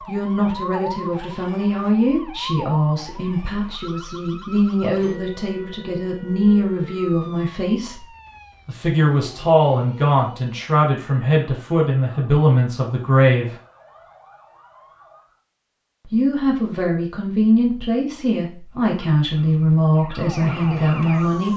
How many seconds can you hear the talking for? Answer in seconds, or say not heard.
19 s.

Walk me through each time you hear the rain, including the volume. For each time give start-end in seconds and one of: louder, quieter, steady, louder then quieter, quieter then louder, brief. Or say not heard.
not heard.